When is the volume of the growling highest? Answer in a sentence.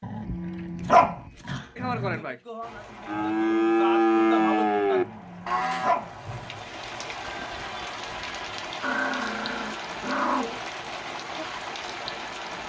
The volume of the growling peaks at 1 second.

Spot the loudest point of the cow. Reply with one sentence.
The volume of the cow peaks at 4 seconds.